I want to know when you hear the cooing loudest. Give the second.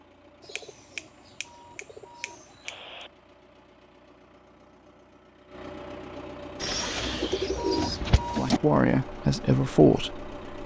8 s.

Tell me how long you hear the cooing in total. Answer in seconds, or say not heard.
4 s.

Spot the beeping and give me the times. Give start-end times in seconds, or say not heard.
1.4-3.1, 7.5-8.5.